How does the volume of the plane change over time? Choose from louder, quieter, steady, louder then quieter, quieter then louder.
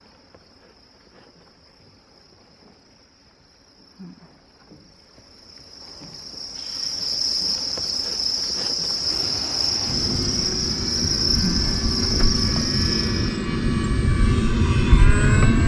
louder.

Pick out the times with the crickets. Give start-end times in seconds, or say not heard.
0.0-13.4.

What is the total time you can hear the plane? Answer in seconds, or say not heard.
7 s.